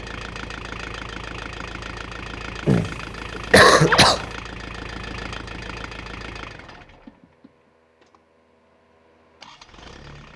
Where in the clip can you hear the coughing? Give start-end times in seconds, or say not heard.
2.6-4.2.